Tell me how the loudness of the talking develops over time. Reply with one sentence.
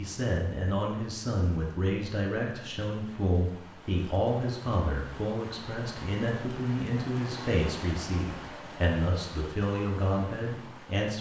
The loudness of the talking stays about the same.